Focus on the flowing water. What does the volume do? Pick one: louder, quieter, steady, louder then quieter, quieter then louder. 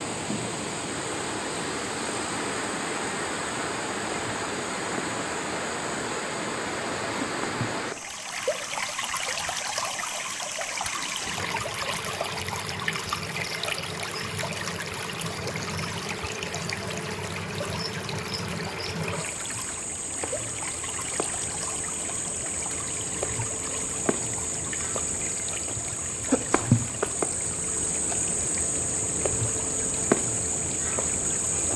quieter.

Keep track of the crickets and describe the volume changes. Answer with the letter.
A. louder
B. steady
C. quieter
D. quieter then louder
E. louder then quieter
A.